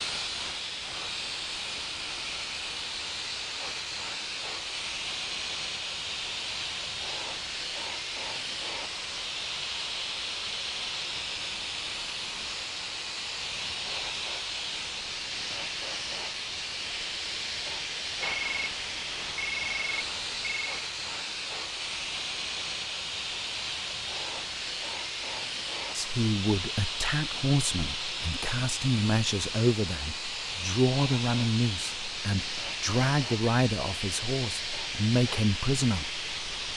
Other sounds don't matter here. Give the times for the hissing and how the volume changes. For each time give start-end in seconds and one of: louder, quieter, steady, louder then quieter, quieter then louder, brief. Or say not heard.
0.0-36.7 steady.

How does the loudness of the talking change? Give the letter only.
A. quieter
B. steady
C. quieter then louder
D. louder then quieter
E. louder
B.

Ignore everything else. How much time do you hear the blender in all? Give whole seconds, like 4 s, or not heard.
not heard.